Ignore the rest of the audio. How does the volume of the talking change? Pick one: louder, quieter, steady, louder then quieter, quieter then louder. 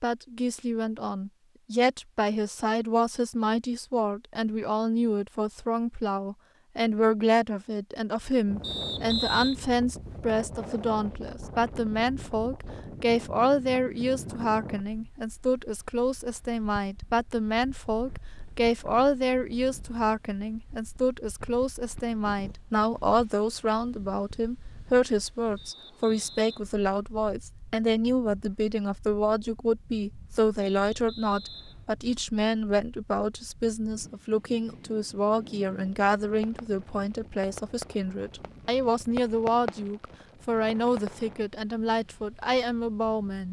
steady.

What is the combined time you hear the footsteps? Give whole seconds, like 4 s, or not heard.
not heard.